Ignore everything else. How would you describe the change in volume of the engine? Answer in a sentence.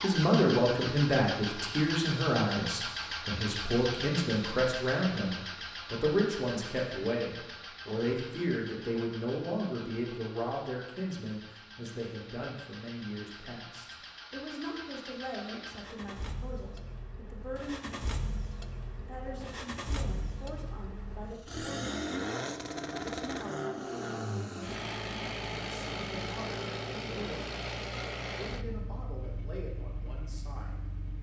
The volume of the engine goes down, then up.